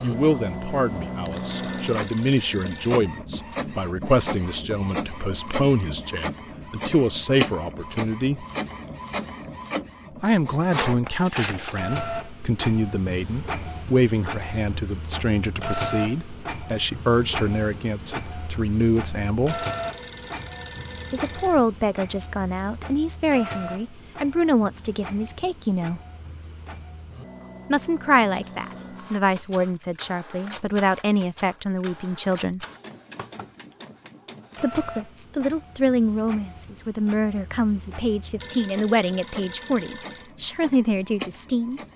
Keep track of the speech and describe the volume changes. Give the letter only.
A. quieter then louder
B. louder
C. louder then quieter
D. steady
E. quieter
D.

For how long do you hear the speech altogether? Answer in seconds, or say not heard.
35 s.